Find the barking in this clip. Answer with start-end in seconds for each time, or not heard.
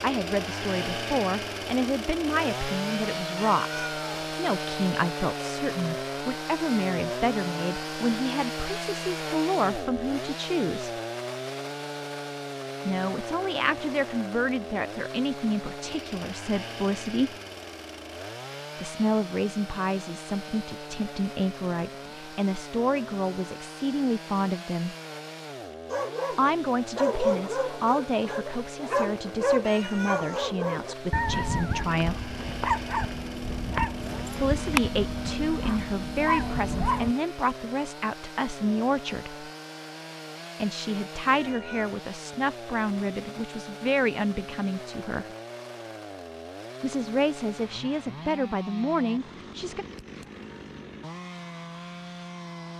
25.9-37.1.